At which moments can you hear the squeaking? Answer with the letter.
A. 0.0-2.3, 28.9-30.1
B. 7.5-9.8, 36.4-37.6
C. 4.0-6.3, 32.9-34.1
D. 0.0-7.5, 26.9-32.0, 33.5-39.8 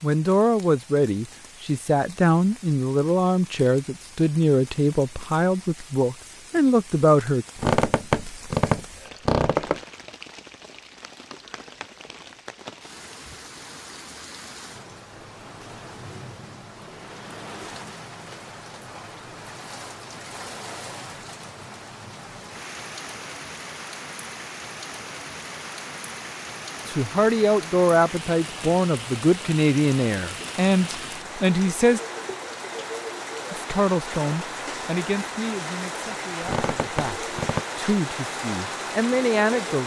B.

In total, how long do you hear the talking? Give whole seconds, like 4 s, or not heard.
19 s.